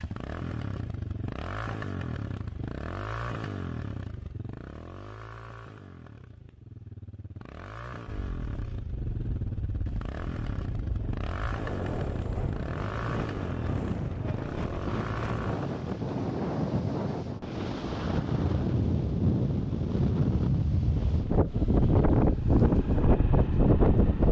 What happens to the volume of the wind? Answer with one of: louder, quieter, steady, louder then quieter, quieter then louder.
louder.